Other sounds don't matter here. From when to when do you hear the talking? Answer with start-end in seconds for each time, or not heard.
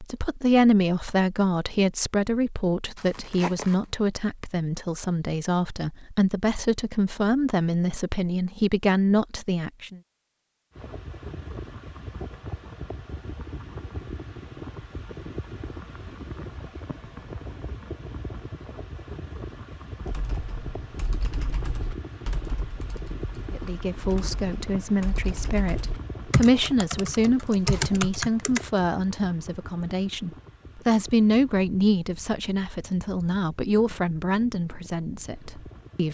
0.0-10.0, 23.5-36.0.